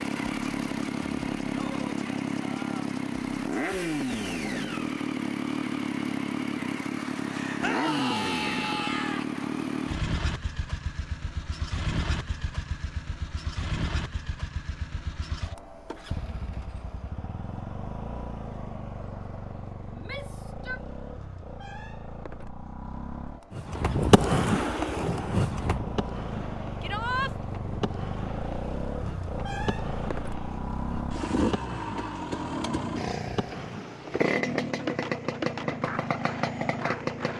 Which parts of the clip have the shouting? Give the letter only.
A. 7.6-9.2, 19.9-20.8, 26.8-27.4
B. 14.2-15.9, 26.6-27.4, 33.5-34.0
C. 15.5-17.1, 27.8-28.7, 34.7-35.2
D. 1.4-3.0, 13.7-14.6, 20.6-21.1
A.